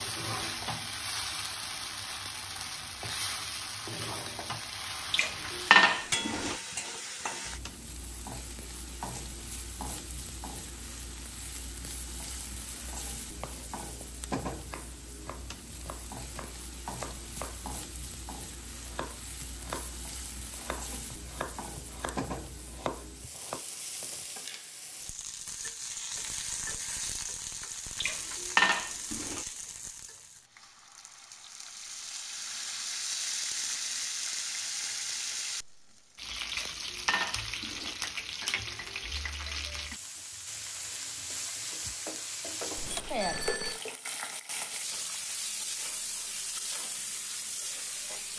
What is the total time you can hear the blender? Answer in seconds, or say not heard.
not heard.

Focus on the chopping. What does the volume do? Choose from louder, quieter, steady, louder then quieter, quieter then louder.
louder.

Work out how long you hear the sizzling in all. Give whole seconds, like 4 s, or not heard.
48 s.